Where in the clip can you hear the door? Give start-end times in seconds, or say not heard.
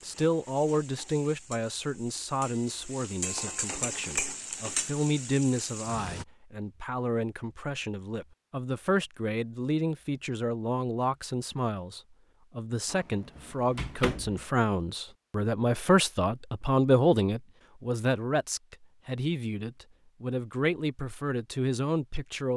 12.8-14.4.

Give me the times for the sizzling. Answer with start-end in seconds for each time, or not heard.
0.0-6.2.